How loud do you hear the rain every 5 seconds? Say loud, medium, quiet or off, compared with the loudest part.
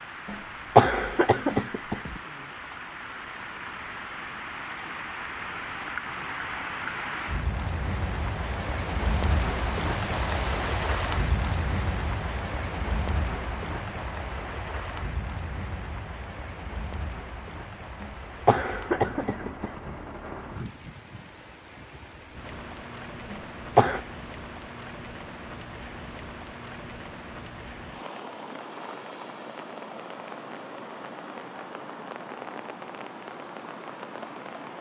medium, loud, loud, medium, medium, medium, medium.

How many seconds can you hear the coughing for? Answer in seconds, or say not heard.
4 s.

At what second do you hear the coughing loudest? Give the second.
1 s.